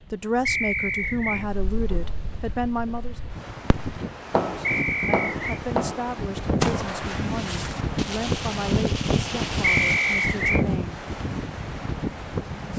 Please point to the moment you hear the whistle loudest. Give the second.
10 s.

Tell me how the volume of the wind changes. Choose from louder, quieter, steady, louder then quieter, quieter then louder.
louder.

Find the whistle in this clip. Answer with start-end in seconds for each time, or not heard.
0.5-1.4, 4.6-5.6, 9.6-10.7.